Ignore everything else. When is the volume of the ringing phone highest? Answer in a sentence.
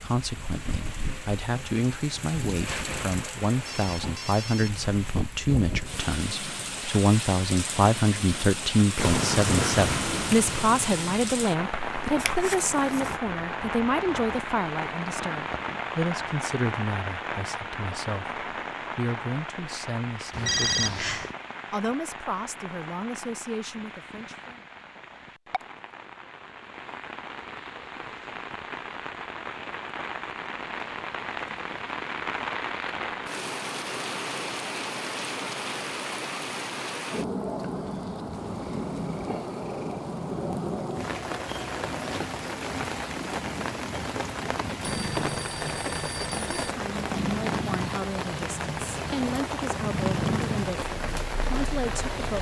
The volume of the ringing phone peaks at 21 seconds.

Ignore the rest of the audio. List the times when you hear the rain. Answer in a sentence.
The rain can be heard from 0.0 to 52.3 s.